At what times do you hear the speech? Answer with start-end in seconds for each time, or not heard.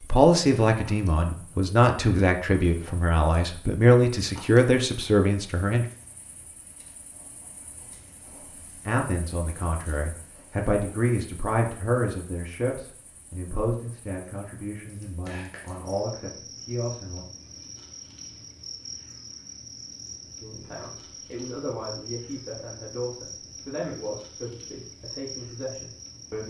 0.0-5.8, 8.8-17.2, 20.4-26.4.